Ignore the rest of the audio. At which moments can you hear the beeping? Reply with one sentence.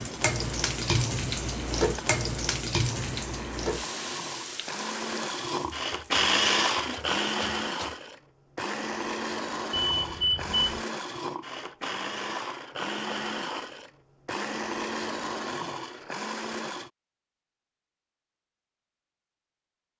You can hear the beeping from 9.7 to 10.8 s.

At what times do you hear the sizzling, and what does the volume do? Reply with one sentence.
The sizzling can be heard from 0.0 to 8.0 s, getting quieter.